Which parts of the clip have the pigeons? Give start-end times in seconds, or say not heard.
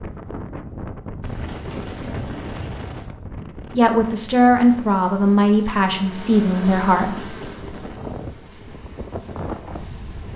1.2-3.1.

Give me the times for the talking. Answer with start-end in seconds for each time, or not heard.
3.7-7.2.